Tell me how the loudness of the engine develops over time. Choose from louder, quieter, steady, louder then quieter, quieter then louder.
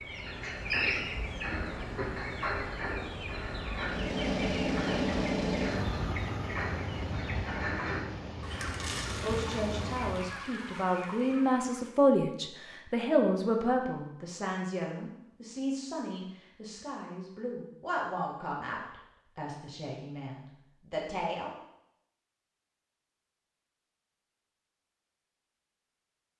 quieter.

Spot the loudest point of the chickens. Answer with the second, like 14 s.
1 s.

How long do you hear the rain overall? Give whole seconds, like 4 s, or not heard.
not heard.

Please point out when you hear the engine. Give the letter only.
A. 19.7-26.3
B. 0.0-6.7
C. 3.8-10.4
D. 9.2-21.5
C.